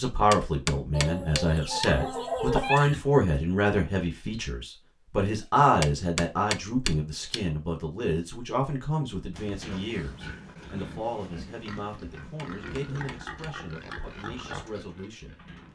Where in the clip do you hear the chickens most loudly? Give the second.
3 s.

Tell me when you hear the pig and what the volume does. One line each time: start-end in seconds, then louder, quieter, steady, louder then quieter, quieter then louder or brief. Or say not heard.
9.3-15.7 steady.